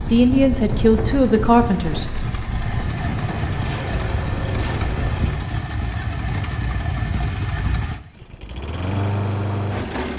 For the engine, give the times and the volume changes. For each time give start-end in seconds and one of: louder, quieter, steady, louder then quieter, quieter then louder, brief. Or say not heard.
0.0-10.1 louder.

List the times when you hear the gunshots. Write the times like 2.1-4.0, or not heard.
3.6-5.3.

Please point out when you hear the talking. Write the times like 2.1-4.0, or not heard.
0.0-2.1.